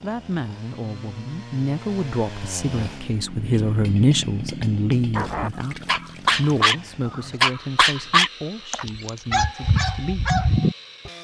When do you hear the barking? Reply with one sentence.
The barking can be heard from 5.1 to 11.1 s.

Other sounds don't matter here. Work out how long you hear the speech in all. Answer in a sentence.
You can hear the speech for 10 seconds altogether.